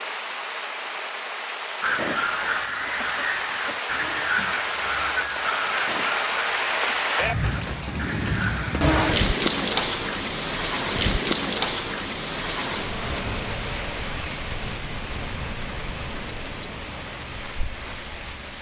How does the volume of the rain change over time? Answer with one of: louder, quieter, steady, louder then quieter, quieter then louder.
louder then quieter.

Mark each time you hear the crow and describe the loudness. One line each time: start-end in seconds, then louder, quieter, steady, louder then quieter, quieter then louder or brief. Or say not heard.
1.8-8.8 quieter.